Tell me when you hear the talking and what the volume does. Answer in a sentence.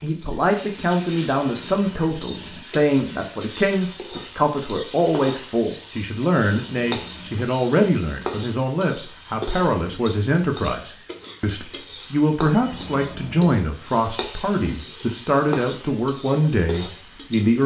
You can hear the talking from 0.0 to 17.6 s, at a steady volume.